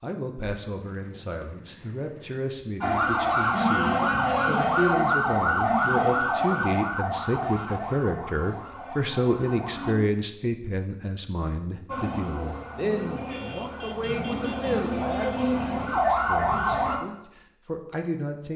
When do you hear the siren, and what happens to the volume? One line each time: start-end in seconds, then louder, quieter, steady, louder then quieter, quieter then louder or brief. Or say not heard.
2.8-9.9 quieter
11.8-17.0 louder.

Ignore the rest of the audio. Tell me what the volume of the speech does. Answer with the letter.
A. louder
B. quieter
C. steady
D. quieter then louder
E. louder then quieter
E.